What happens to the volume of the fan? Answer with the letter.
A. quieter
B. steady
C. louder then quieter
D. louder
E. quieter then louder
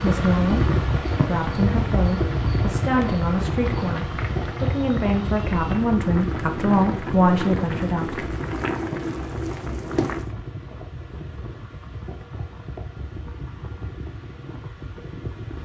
A.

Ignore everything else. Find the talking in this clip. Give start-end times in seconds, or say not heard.
0.0-8.3.